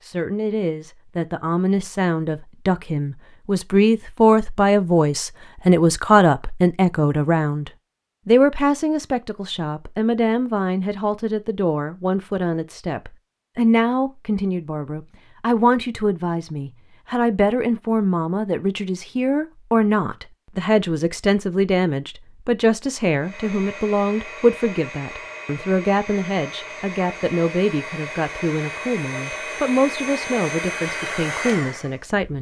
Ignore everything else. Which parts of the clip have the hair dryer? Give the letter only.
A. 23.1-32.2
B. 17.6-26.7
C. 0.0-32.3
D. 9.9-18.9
A.